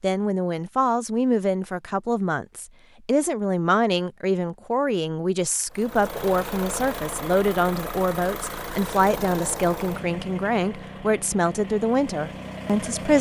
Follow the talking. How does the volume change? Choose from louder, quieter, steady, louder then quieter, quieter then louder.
steady.